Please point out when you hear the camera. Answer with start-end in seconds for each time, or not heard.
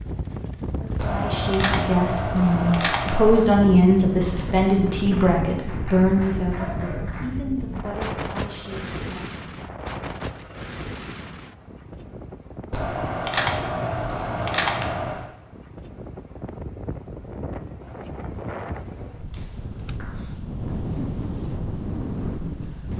0.9-3.5, 12.7-15.2.